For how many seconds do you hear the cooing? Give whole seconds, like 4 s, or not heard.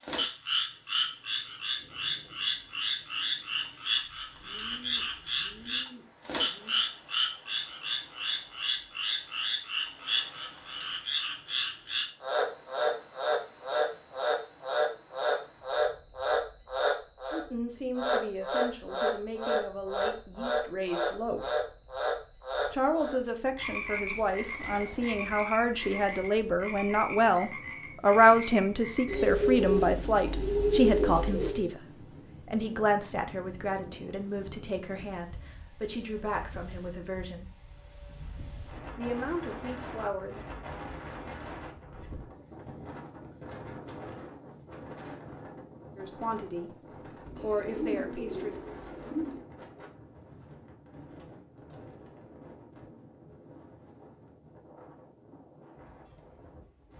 10 s.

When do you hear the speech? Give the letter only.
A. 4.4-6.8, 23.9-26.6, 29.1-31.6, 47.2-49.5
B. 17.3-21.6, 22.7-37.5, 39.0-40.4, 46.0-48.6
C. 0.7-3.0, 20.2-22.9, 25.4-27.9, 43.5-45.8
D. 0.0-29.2
B.